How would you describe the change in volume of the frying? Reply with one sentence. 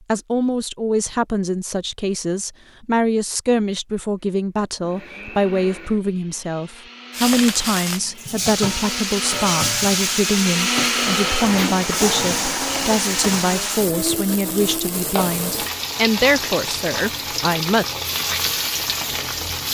The loudness of the frying stays about the same.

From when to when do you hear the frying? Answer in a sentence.
You can hear the frying from 7.1 to 19.7 s.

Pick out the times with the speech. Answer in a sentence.
You can hear the speech from 0.1 to 17.9 s.